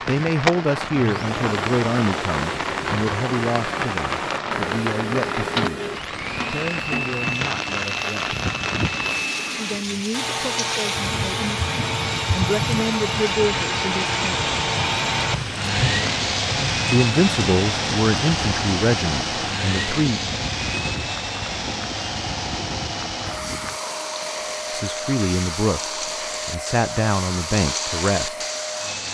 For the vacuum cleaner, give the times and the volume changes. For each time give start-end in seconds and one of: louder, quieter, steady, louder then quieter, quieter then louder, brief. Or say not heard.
0.0-29.0 louder then quieter.